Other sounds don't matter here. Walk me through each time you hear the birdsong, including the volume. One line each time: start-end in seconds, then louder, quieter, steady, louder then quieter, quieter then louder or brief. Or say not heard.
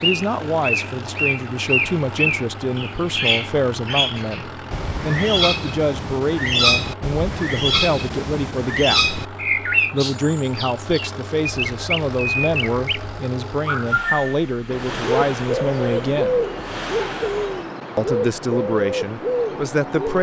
0.0-20.1 steady.